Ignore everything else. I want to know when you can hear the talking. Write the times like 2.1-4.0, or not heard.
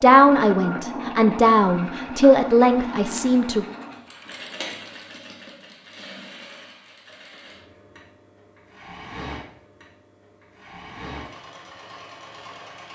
0.0-3.6.